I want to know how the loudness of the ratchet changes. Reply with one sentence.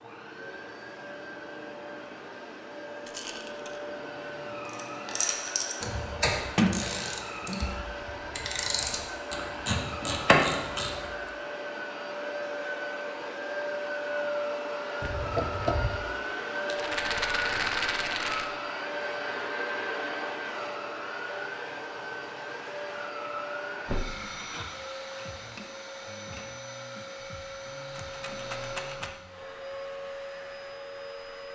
The volume of the ratchet goes down, then up.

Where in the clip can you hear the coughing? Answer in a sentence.
The coughing can't be heard in this clip.